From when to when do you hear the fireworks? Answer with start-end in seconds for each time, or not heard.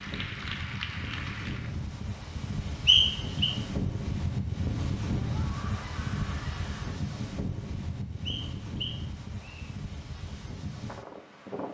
not heard.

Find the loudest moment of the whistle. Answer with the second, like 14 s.
3 s.